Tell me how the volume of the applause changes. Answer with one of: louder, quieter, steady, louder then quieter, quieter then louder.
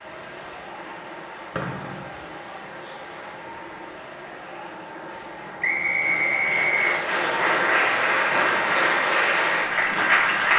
louder.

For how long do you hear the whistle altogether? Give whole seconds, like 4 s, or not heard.
2 s.